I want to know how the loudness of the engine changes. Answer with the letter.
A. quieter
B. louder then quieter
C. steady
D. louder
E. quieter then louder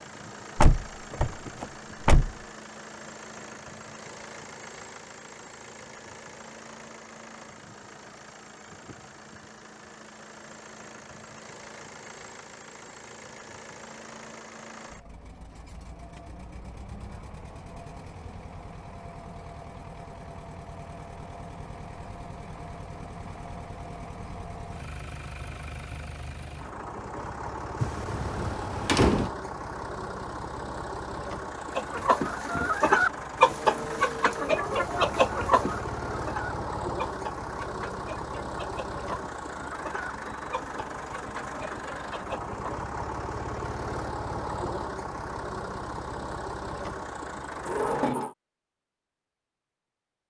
D.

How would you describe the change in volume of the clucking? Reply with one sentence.
The volume of the clucking goes down.